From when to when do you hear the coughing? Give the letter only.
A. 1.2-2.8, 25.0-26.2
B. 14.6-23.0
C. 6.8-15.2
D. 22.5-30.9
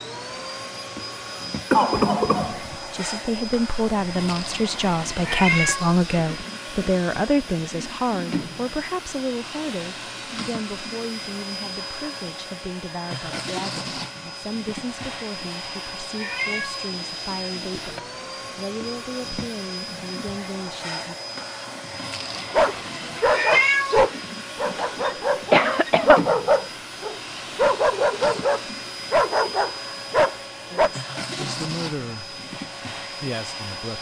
A.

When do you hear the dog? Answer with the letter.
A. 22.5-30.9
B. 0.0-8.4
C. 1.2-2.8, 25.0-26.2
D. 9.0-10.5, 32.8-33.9
A.